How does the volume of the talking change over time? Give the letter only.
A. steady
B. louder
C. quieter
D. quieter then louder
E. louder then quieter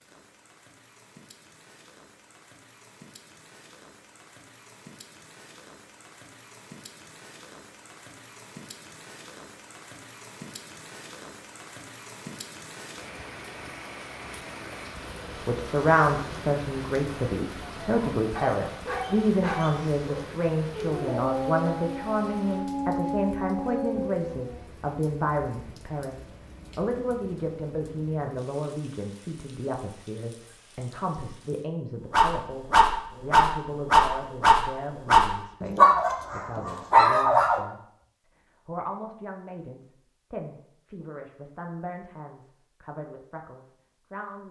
C.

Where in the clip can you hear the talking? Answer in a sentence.
You can hear the talking from 15.4 to 37.8 s and from 38.6 to 44.4 s.